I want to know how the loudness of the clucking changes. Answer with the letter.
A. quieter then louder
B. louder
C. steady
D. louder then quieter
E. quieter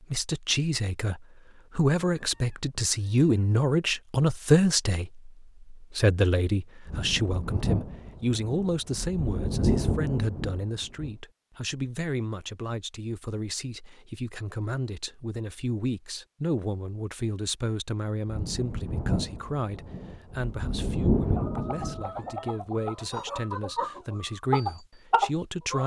B.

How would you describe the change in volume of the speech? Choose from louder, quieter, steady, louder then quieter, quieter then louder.
quieter.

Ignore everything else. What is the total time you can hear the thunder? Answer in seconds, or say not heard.
8 s.